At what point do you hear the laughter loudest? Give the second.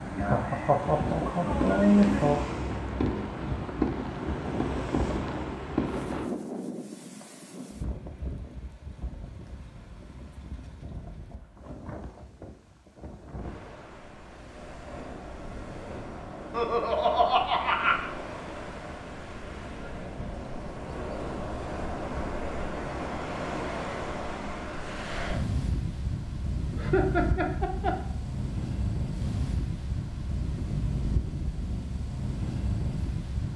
2 s.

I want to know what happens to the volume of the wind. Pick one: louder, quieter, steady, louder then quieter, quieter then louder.
quieter then louder.